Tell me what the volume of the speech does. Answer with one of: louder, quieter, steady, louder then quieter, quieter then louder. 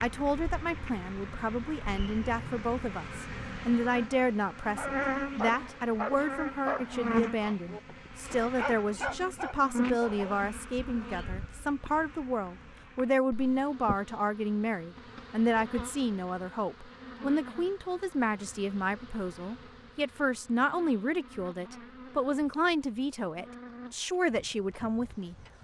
steady.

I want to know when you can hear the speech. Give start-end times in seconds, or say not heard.
0.0-25.4.